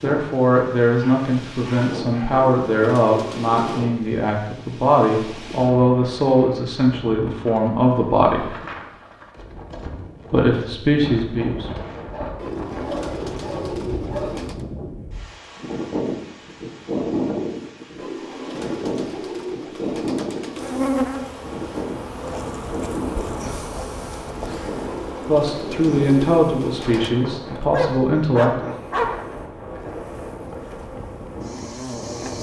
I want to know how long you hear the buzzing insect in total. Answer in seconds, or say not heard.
12 s.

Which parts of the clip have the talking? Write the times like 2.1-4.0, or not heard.
0.0-8.6, 10.3-11.8, 25.2-28.8.